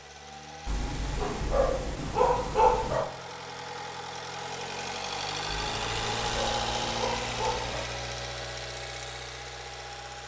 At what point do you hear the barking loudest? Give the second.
3 s.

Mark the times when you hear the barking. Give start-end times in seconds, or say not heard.
0.7-3.1, 5.7-7.9.